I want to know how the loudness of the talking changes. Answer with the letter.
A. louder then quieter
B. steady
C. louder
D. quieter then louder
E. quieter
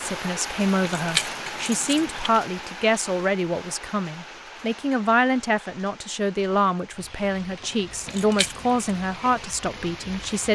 B.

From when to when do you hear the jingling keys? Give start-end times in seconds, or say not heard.
0.8-2.4, 8.1-8.8.